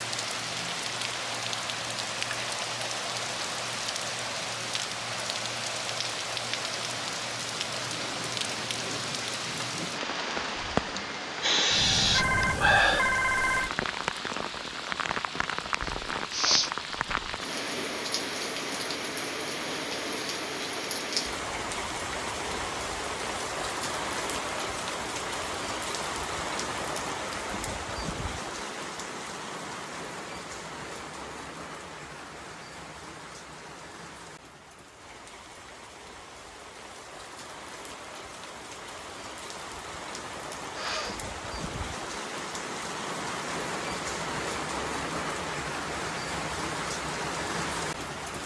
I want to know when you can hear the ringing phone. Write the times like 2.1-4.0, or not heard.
12.1-13.7.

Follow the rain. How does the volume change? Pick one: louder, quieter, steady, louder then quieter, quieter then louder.
quieter then louder.